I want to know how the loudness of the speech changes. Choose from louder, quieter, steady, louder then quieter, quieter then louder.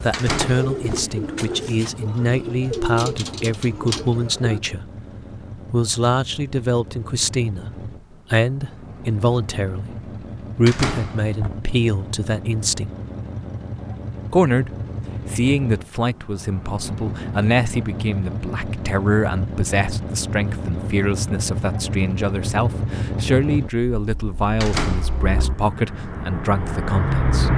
steady.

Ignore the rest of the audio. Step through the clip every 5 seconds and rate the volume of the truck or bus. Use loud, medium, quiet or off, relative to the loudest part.
quiet, quiet, medium, medium, loud, loud.